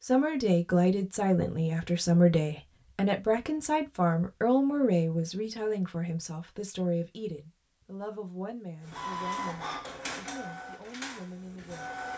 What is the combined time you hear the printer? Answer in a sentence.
You can hear the printer for 3 seconds altogether.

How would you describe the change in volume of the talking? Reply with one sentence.
The loudness of the talking goes down.